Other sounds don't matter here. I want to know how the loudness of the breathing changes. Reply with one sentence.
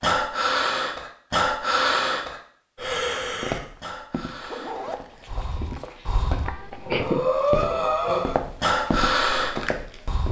The volume of the breathing goes down, then up.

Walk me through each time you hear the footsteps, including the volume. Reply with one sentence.
You can hear the footsteps from 3.2 to 10.2 s, getting louder.